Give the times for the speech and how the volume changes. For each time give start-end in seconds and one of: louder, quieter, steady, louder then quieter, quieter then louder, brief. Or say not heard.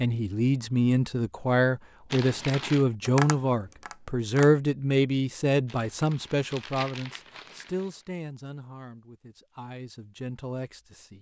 0.0-11.1 quieter.